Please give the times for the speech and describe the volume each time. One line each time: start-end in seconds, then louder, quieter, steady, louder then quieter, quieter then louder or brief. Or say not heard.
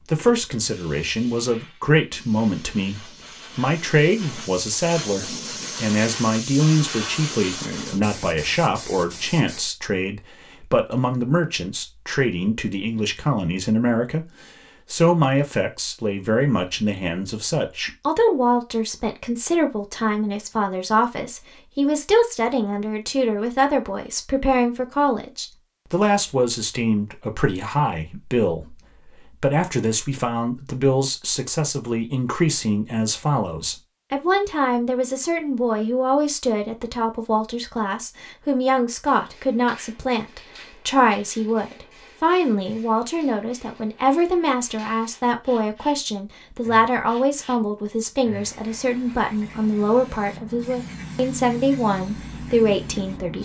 0.1-14.3 steady
14.9-53.4 steady.